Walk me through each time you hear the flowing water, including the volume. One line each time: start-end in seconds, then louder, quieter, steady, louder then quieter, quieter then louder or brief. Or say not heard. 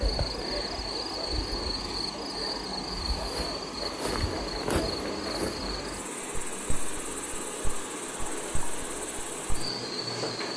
0.0-10.5 steady.